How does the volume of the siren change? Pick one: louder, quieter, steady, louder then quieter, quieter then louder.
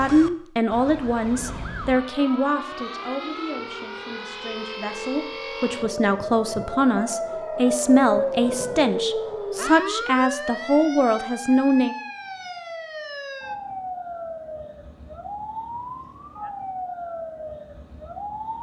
louder then quieter.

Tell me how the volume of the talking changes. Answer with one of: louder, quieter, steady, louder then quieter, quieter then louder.
quieter then louder.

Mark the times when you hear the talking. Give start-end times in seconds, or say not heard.
0.0-11.9.